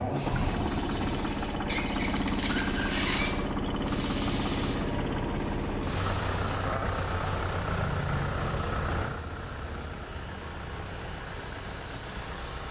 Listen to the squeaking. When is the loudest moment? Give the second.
3 s.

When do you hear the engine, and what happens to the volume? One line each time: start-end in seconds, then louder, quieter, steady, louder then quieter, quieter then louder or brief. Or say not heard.
0.0-12.6 quieter.